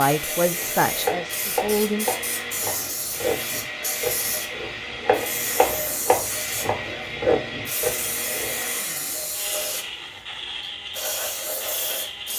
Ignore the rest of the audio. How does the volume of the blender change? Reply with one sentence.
The loudness of the blender stays about the same.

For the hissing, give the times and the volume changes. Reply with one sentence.
You can hear the hissing from 0.0 to 12.3 s, at a steady volume.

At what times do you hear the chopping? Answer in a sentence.
The chopping can be heard from 0.5 to 8.6 s.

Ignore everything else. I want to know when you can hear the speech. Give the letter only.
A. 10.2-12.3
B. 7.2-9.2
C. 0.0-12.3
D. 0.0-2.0
D.